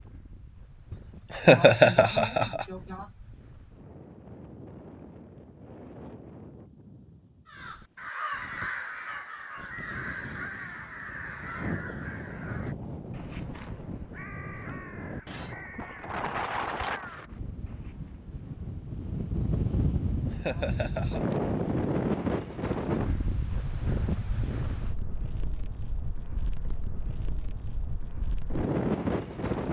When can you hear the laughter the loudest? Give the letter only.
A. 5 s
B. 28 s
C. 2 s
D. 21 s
C.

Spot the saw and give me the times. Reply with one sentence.
The saw can't be heard in this clip.